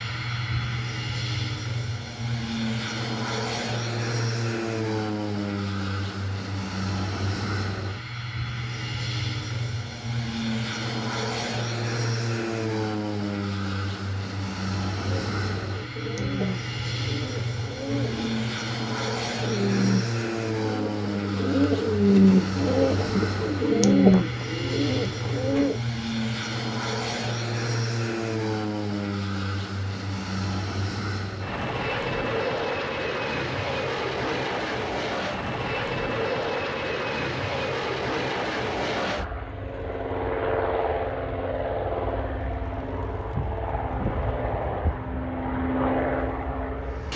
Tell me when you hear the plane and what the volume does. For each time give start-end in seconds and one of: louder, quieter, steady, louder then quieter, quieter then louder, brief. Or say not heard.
0.0-47.1 steady.